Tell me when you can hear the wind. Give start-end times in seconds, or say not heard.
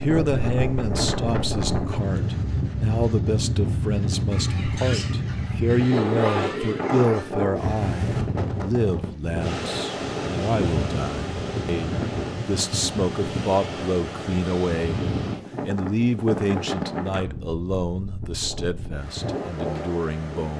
0.0-20.5.